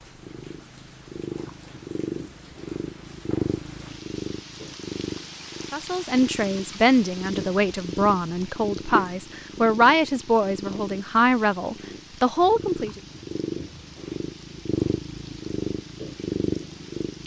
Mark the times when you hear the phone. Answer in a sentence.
The phone can't be heard in this clip.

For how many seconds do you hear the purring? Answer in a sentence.
You can hear the purring for 17 seconds altogether.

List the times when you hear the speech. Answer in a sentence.
The speech can be heard from 5.7 to 13.0 s.